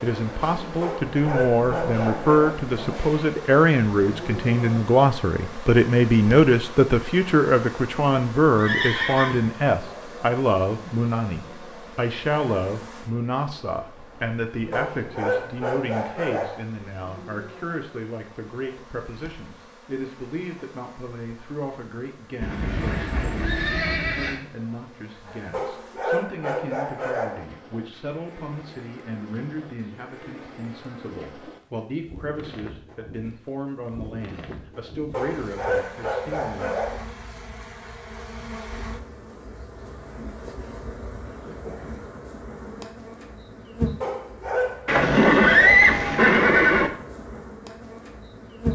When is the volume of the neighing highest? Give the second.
46 s.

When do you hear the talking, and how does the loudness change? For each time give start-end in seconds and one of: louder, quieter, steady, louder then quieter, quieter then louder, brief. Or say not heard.
0.0-36.9 quieter.